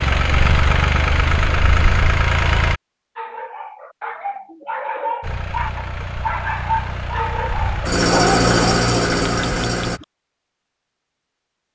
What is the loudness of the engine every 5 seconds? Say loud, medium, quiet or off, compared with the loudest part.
loud, loud, off.